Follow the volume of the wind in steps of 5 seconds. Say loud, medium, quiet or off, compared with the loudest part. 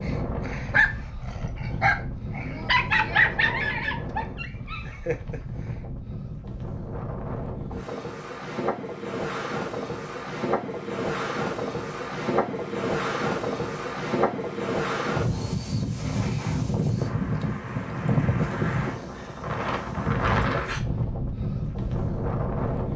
medium, medium, loud, loud, loud.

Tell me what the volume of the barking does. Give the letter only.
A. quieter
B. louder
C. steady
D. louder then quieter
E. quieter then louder
A.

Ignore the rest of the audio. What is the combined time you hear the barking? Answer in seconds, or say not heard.
6 s.